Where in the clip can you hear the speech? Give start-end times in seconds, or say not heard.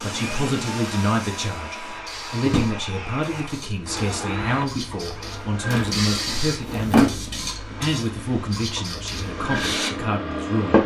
0.0-10.8.